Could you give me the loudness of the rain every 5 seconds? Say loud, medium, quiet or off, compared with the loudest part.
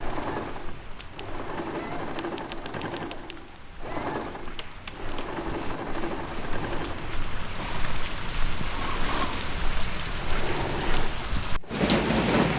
quiet, medium, loud.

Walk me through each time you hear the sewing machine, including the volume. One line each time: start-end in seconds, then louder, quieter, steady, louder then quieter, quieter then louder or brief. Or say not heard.
0.0-12.5 steady.